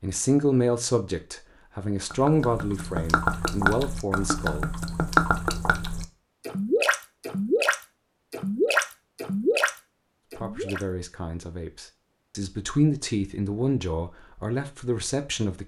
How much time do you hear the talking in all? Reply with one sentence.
The talking can be heard for 10 seconds in total.